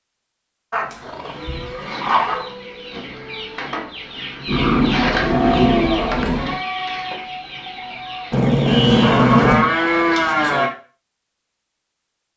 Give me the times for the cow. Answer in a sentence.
You can hear the cow from 0.9 to 2.5 s, from 4.5 to 6.5 s and from 8.7 to 10.7 s.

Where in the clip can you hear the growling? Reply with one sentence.
You can hear the growling from 0.7 to 2.5 s, from 4.5 to 6.6 s and from 8.3 to 9.8 s.